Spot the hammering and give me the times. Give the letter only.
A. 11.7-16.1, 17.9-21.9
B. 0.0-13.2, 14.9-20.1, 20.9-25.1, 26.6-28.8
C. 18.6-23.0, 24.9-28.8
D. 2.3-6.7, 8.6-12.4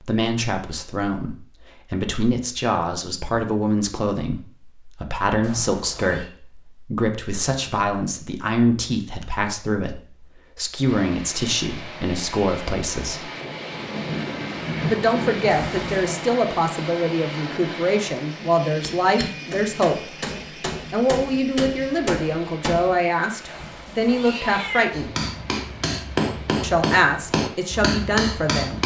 C.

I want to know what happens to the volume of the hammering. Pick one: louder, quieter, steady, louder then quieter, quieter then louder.
louder.